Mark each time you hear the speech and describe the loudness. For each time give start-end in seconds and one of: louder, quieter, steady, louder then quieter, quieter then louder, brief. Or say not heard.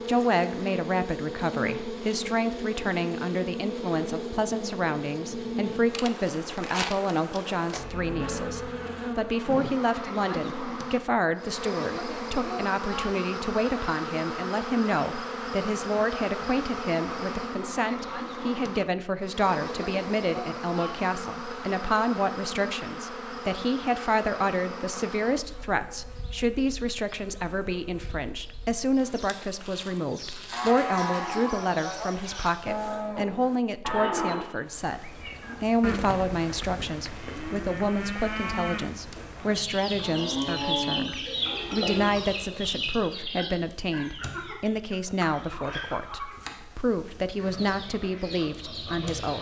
0.1-49.3 steady.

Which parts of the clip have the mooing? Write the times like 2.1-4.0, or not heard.
30.5-42.1.